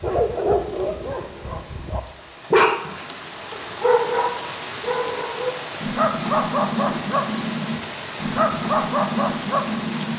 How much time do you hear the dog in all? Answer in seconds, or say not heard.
10 s.